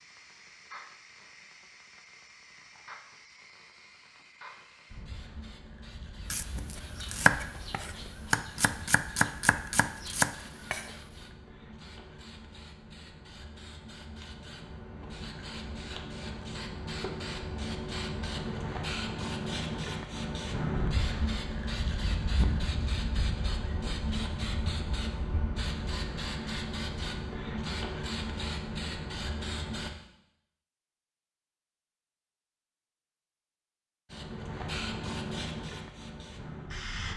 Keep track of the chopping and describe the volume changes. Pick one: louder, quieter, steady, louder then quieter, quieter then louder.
quieter then louder.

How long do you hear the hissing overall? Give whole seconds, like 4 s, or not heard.
33 s.